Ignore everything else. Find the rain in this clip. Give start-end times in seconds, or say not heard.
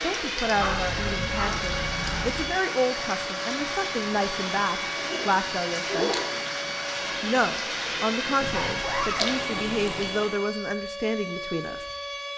0.0-10.5.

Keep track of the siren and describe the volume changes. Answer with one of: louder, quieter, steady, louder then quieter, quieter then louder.
steady.